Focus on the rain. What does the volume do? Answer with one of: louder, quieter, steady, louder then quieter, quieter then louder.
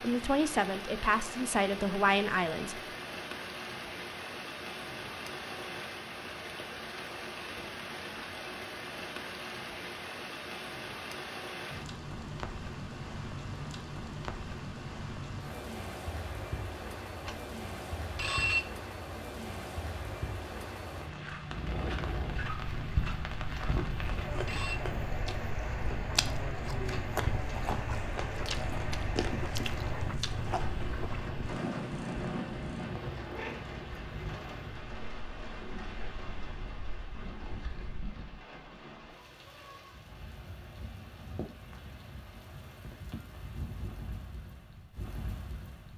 quieter.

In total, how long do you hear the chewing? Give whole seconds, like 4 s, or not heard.
8 s.